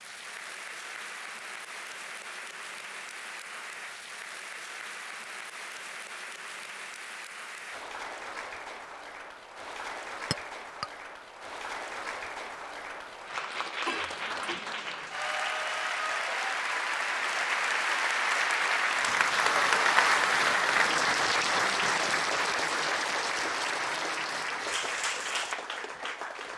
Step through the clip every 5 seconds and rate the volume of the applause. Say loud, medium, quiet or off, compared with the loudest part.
quiet, quiet, medium, loud, loud, medium.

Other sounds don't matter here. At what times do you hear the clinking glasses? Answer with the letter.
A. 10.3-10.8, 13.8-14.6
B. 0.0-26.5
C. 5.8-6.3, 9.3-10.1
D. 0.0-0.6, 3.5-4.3
A.